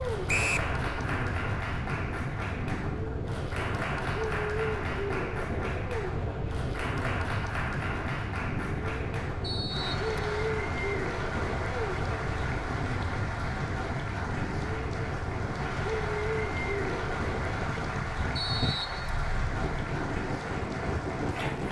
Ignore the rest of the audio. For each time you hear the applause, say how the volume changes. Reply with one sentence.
You can hear the applause from 0.0 to 21.6 s, at a steady volume.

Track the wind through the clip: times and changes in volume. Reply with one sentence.
The wind can be heard from 0.0 to 21.6 s, at a steady volume.